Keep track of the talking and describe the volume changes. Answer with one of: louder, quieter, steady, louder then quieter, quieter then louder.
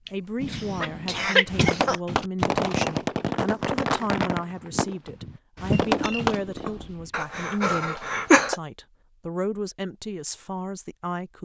steady.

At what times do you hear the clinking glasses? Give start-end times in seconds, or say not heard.
5.7-7.2.